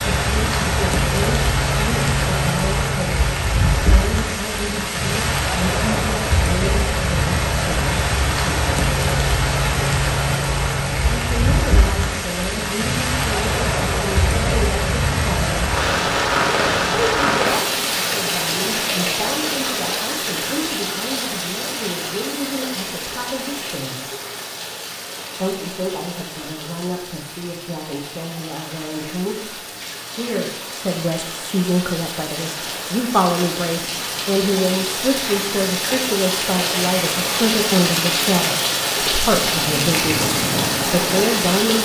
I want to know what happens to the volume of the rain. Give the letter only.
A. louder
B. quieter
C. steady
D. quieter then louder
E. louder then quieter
D.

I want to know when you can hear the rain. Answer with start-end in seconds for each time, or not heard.
0.0-41.8.